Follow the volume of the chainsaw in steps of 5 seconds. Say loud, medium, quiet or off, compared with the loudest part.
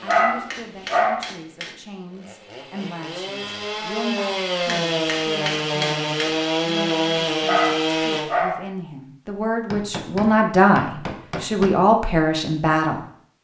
medium, loud, off.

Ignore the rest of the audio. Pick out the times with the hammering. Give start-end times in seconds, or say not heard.
0.1-1.8, 4.7-6.3, 9.7-11.7.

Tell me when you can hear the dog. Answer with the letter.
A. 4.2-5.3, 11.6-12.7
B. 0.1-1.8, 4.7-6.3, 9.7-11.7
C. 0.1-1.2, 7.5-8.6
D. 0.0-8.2
C.